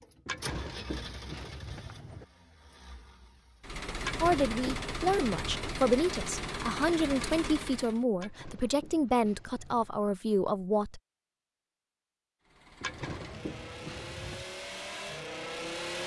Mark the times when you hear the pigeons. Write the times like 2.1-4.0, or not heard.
0.2-2.2, 4.0-5.7, 8.2-10.0, 12.8-14.4.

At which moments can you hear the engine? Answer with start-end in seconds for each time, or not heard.
0.0-8.1, 12.4-16.0.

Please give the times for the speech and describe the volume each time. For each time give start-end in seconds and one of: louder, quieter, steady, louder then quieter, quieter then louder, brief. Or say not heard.
4.2-11.0 steady.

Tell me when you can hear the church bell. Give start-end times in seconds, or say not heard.
not heard.